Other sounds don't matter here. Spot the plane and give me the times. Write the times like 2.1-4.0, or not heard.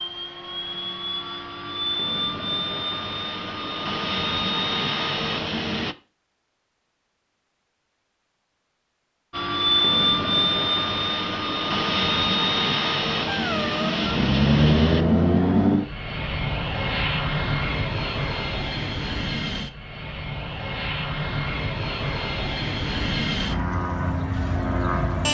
0.0-6.0, 9.3-25.3.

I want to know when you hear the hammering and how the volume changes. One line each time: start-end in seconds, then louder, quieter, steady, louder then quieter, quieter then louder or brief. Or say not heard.
not heard.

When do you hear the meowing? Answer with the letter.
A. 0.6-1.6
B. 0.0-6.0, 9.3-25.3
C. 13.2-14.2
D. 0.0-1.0
C.